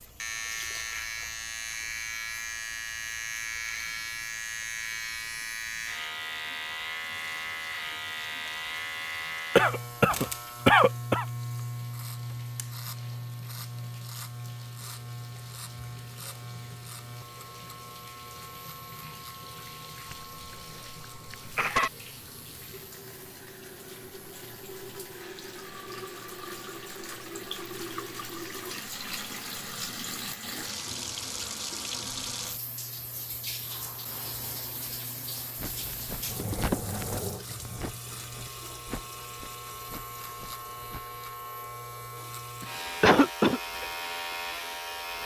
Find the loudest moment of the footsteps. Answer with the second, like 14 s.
37 s.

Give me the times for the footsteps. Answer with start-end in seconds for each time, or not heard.
35.5-41.2.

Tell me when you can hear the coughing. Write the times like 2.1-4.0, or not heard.
9.6-11.2, 20.1-21.9, 42.6-43.6.